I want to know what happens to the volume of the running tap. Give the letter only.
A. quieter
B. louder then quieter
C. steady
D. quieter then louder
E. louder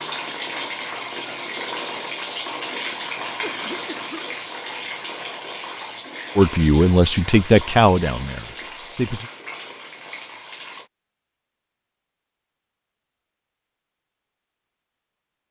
A.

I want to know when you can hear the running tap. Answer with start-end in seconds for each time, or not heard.
0.0-10.9.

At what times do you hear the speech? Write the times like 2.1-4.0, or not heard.
6.3-9.3.